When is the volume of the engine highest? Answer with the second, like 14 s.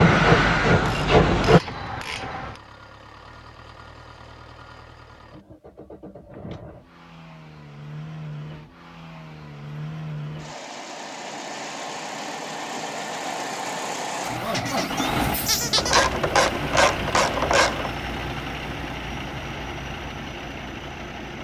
15 s.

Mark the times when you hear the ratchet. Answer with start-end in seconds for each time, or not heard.
0.8-2.6, 15.8-17.9.